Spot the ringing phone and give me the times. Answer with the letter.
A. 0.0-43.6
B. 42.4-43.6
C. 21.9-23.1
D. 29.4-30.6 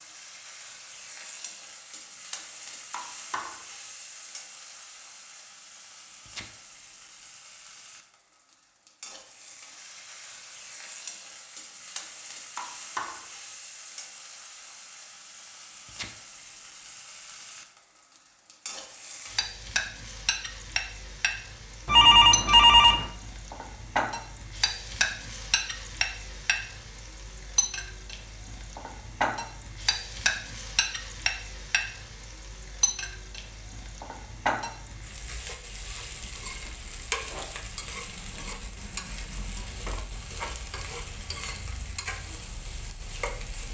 C.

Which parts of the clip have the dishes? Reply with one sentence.
You can't hear the dishes here.